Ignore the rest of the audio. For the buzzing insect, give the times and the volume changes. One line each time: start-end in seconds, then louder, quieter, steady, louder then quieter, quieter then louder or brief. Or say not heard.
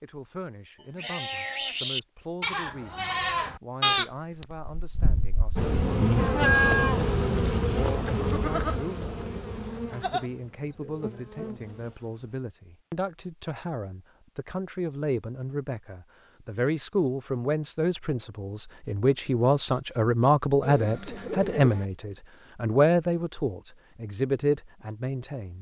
5.5-12.3 quieter.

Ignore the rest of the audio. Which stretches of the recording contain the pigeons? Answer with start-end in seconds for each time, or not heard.
20.6-21.9.